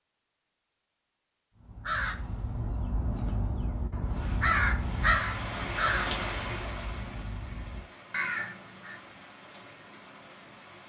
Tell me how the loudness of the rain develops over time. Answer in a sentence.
The volume of the rain goes down.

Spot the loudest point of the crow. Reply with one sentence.
The loudest moment of the crow is at 5 seconds.